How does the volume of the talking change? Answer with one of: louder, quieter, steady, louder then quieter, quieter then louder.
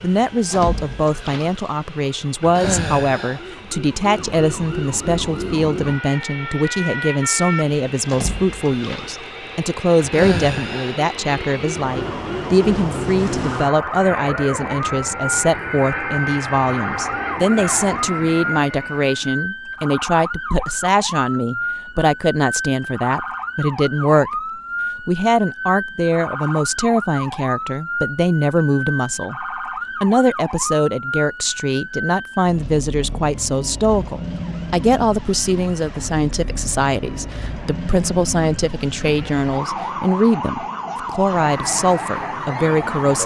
steady.